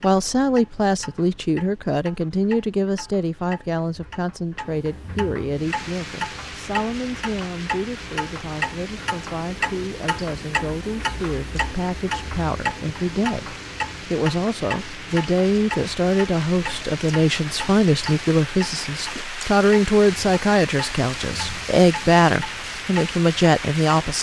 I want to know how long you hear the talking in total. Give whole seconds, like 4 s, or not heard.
24 s.